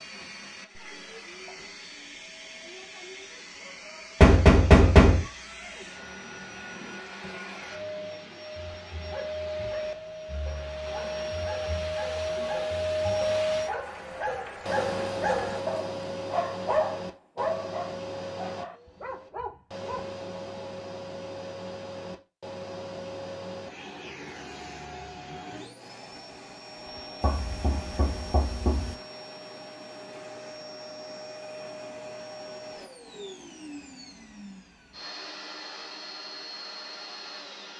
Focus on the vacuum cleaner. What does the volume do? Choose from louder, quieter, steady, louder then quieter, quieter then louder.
louder then quieter.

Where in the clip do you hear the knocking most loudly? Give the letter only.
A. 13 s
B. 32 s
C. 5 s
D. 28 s
C.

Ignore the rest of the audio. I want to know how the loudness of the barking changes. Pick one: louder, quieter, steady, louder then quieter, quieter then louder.
louder then quieter.